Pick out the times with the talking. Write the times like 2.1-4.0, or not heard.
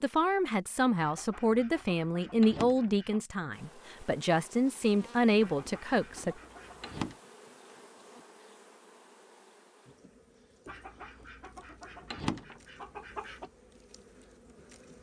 0.0-6.3.